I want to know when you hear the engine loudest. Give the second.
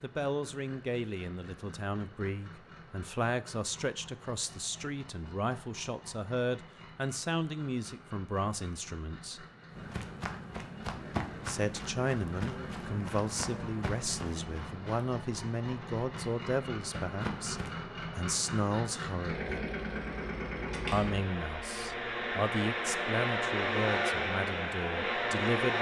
24 s.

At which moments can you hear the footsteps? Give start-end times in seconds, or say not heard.
9.7-17.8.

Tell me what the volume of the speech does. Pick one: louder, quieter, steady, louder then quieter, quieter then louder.
steady.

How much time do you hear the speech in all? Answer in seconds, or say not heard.
22 s.